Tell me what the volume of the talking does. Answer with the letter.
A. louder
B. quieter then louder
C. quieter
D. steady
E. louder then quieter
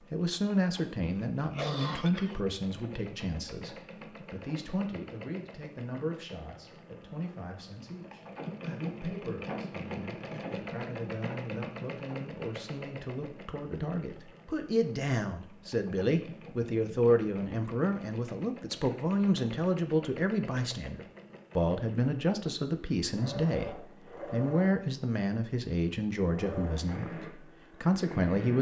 B.